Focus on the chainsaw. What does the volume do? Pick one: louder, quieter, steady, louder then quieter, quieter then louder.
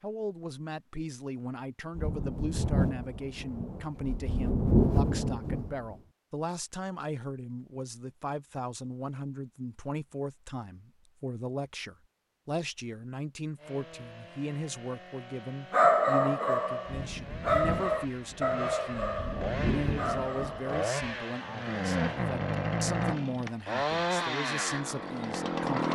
louder.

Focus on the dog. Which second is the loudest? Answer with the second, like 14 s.
16 s.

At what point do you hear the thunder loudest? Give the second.
5 s.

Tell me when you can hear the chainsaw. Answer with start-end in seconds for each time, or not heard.
13.6-25.9.